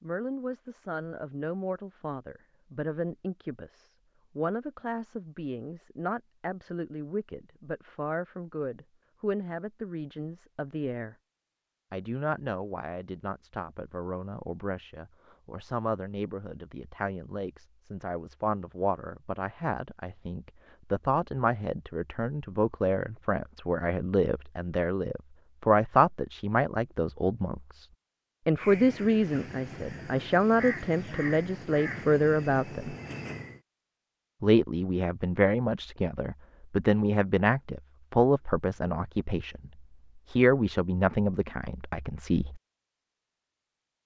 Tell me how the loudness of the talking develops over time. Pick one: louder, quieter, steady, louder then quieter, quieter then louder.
louder.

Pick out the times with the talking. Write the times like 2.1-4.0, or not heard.
0.0-11.2, 11.9-27.9, 28.4-33.0, 34.4-42.6.